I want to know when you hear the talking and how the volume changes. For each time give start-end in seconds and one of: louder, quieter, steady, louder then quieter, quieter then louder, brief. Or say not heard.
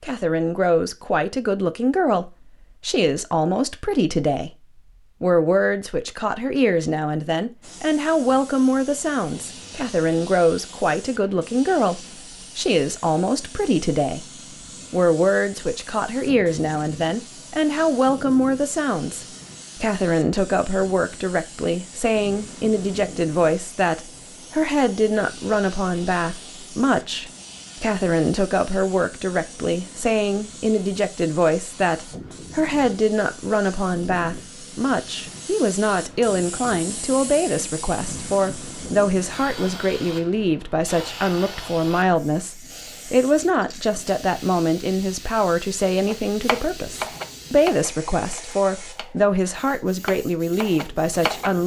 0.0-4.5 steady
5.2-14.2 steady
14.9-51.6 steady.